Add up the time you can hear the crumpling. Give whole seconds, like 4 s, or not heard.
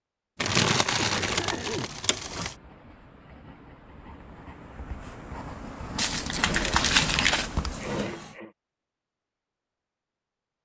4 s.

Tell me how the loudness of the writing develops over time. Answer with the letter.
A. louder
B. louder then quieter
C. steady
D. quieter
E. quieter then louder
A.